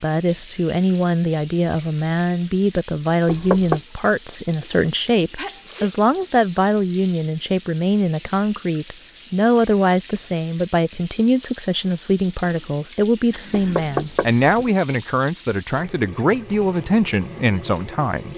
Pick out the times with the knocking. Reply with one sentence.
You can hear the knocking from 3.2 to 3.8 s and from 13.5 to 14.8 s.